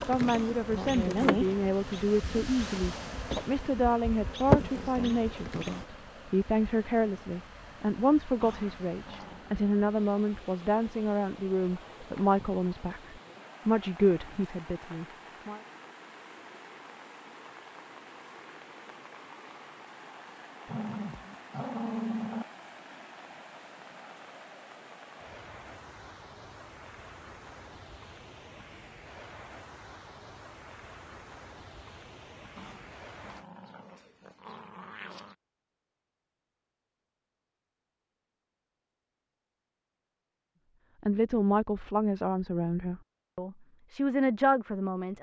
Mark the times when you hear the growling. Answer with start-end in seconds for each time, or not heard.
8.4-9.4, 20.6-22.4, 32.5-35.4.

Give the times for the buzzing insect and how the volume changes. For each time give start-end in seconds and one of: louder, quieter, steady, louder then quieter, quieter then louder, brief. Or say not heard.
0.0-5.8 quieter then louder.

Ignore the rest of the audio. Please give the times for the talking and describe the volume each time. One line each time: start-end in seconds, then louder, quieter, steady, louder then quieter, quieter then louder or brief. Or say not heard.
0.1-15.6 steady
41.0-45.1 quieter then louder.